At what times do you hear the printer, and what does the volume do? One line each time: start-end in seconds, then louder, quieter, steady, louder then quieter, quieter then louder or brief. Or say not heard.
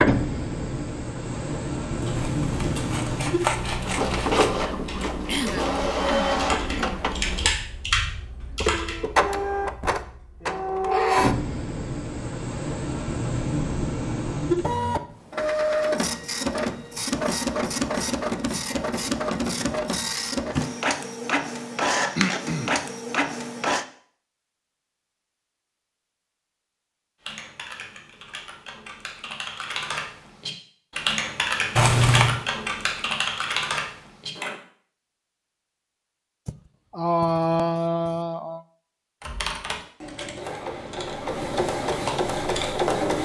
0.0-23.9 steady
40.4-43.2 brief.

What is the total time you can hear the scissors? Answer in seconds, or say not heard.
3 s.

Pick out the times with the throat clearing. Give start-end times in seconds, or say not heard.
5.2-7.0, 22.1-22.8, 36.5-38.6.